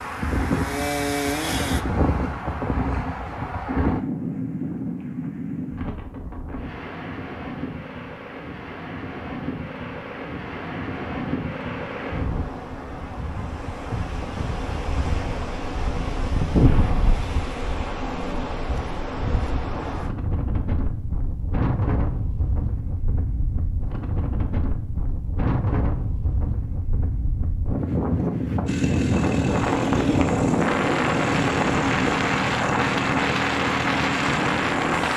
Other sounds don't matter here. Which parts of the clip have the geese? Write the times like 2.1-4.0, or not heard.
not heard.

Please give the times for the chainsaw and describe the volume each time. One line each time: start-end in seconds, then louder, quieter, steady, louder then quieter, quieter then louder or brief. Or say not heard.
0.0-1.9 brief
28.6-35.1 steady.